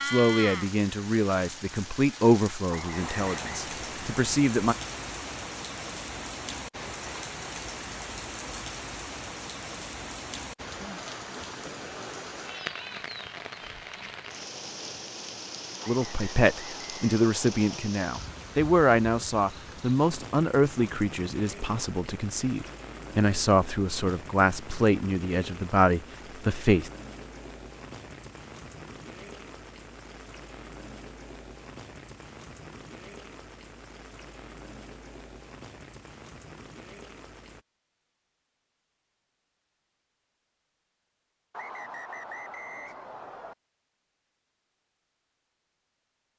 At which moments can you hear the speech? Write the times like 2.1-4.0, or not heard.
0.1-4.8, 15.8-26.9.